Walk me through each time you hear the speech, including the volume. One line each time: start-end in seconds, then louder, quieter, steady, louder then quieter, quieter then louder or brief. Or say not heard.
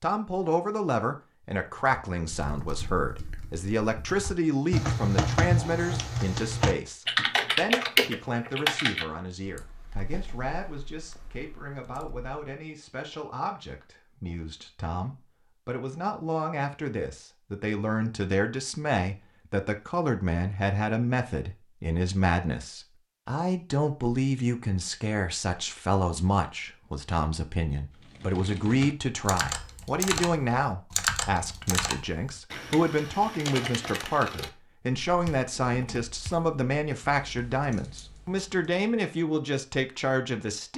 0.0-40.7 quieter then louder.